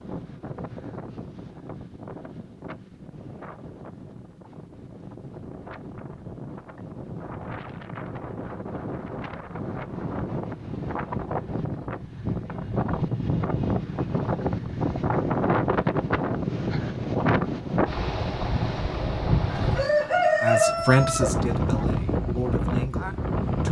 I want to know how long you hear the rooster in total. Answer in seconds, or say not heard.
2 s.